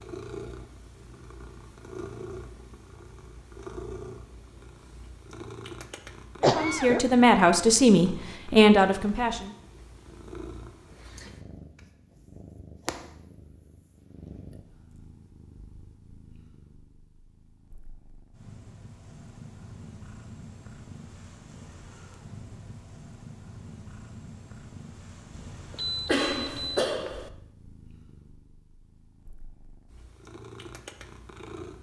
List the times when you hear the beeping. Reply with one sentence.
You can hear the beeping from 25.3 to 26.9 s.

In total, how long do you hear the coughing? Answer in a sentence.
The coughing can be heard for 2 seconds in total.